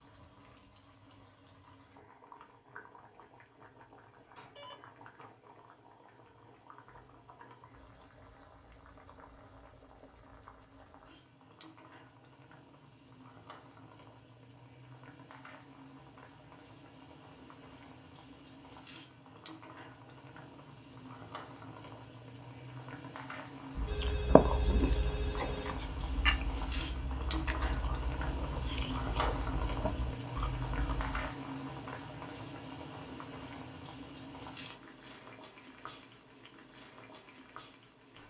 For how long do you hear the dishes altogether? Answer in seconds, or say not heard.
not heard.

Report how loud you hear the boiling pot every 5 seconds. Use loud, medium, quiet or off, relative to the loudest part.
quiet, quiet, quiet, quiet, medium, loud, loud, quiet.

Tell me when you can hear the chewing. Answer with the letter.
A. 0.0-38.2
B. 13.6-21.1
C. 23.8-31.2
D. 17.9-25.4
C.